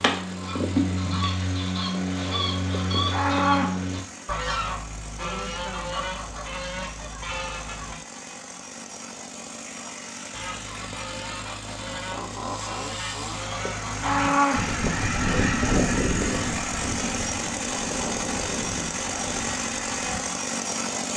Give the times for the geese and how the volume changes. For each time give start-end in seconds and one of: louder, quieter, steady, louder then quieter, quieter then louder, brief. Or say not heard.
0.0-8.0 quieter
10.3-20.2 louder then quieter.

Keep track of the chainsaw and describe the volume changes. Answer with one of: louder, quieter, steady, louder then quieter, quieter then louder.
louder.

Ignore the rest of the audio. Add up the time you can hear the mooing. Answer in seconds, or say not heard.
2 s.